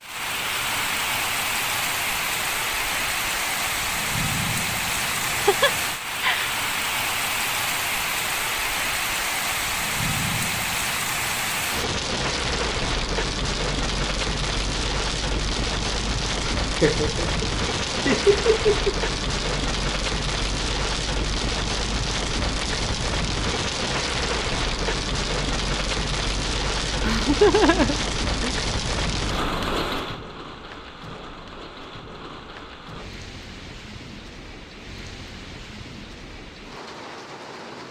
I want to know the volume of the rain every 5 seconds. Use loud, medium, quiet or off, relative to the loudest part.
loud, loud, loud, loud, loud, loud, quiet, quiet.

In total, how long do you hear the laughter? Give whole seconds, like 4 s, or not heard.
5 s.